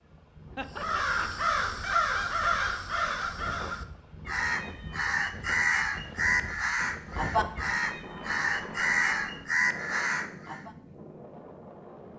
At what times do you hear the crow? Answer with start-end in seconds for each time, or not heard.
0.8-10.7.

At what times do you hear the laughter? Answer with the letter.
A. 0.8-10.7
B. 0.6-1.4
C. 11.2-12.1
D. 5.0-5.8
B.